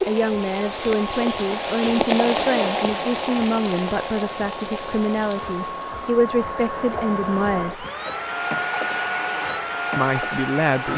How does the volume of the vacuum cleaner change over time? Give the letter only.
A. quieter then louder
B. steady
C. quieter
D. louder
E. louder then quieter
D.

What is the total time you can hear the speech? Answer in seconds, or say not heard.
9 s.